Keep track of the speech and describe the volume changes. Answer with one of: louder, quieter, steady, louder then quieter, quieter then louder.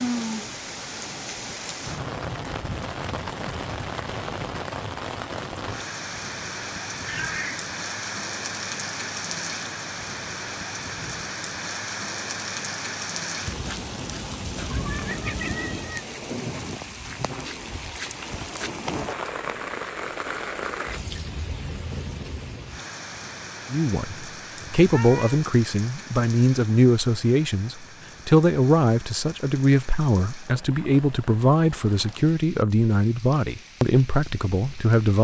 steady.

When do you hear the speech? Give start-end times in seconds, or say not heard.
23.7-35.2.